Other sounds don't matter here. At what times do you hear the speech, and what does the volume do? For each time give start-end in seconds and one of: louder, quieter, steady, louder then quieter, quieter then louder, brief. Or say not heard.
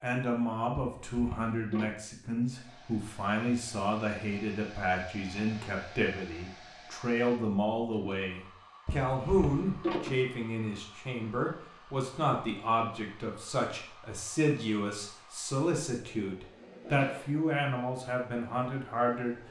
0.0-19.4 steady.